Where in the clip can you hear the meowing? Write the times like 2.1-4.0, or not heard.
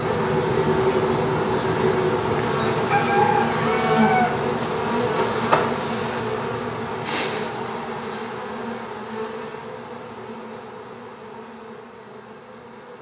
not heard.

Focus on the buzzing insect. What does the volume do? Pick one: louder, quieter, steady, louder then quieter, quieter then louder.
quieter.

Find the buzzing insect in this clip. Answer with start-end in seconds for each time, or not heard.
0.0-12.9.